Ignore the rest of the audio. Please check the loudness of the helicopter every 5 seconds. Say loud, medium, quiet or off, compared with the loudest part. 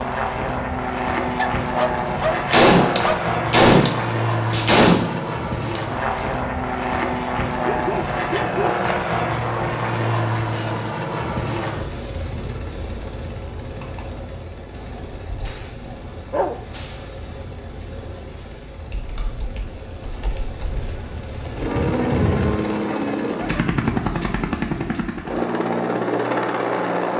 loud, loud, medium, quiet, loud, loud.